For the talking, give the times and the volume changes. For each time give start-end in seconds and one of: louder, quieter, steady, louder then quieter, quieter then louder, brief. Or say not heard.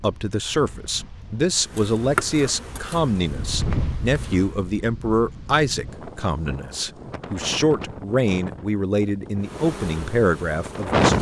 0.0-11.1 steady.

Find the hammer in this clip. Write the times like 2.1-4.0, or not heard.
not heard.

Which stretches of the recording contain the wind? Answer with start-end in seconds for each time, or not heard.
0.0-11.1.